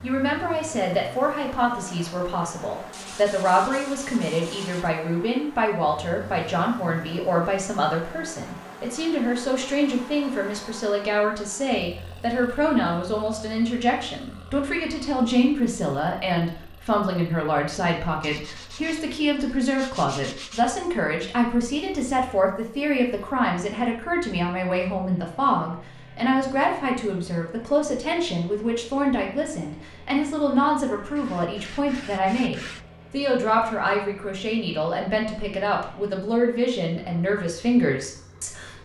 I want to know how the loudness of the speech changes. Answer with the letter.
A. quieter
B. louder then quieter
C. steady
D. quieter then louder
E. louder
C.